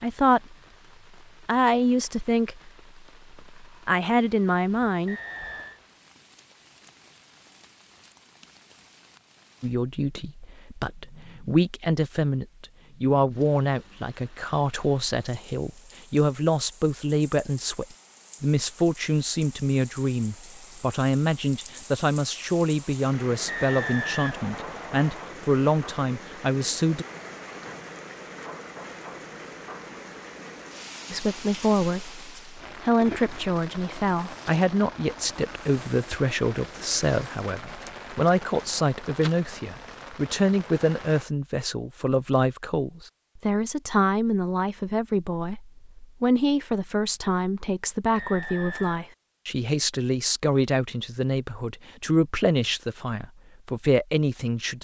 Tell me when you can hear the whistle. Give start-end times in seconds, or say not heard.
5.0-5.8, 23.4-25.2, 48.1-49.1.